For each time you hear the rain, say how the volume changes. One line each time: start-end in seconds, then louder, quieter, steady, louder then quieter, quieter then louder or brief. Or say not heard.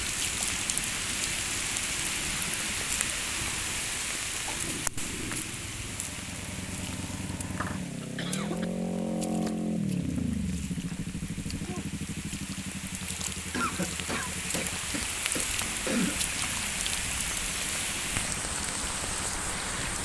0.0-19.9 quieter then louder.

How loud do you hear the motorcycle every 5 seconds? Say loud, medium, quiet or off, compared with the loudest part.
quiet, loud, loud, quiet.